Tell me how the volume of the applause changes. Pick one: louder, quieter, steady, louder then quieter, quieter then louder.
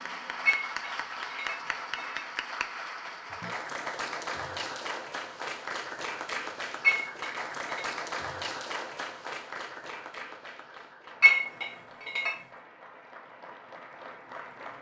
quieter.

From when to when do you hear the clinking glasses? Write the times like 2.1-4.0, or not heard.
0.5-2.2, 6.8-7.9, 11.2-12.3.